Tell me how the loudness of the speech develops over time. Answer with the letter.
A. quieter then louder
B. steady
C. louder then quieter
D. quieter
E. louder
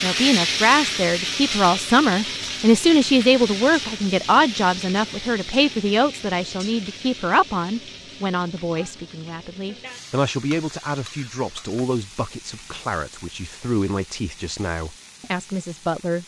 D.